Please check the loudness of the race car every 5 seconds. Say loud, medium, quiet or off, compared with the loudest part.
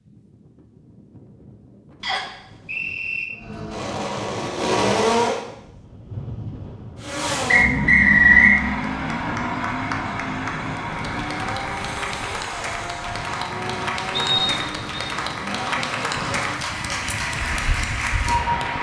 loud, loud, medium, quiet.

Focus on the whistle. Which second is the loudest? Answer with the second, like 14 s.
8 s.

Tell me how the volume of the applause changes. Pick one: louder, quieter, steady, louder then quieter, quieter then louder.
louder.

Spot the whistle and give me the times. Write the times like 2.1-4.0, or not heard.
2.0-3.2, 7.5-8.6, 14.2-15.1.